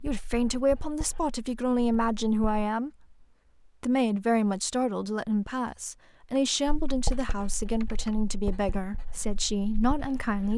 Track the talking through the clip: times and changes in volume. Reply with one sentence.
You can hear the talking from 0.0 to 10.5 s, at a steady volume.